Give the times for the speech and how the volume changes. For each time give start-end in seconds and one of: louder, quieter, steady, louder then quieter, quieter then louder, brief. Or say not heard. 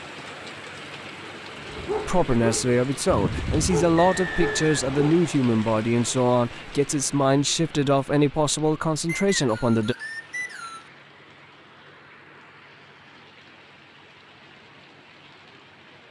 2.0-9.9 steady.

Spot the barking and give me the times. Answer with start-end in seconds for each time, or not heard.
1.6-5.2.